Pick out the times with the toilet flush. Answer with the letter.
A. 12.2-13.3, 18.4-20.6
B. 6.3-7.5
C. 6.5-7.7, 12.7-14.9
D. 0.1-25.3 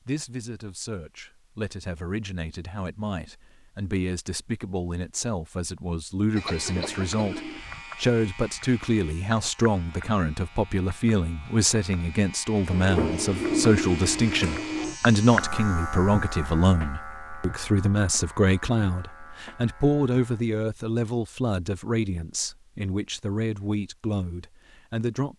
C.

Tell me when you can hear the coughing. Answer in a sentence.
You can hear the coughing from 6.3 to 7.5 s.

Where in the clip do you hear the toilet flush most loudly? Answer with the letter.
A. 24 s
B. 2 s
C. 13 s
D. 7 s
C.